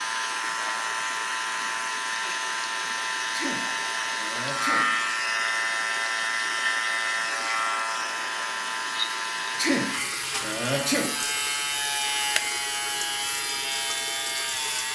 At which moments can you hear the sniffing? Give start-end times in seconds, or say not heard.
3.3-5.0, 9.6-11.2.